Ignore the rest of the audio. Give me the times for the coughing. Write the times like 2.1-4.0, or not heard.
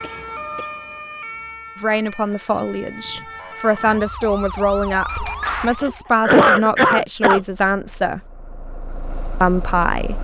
0.0-0.7, 6.2-7.4.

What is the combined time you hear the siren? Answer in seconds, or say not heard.
6 s.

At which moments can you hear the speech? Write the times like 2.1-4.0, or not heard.
1.8-8.2, 9.4-10.1.